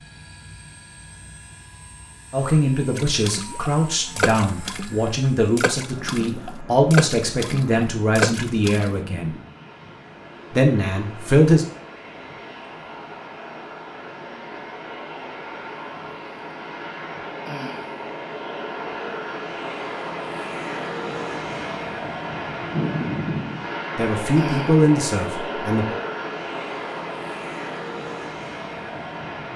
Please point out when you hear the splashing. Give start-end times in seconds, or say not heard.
3.0-9.0.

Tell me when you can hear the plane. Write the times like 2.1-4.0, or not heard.
0.0-29.5.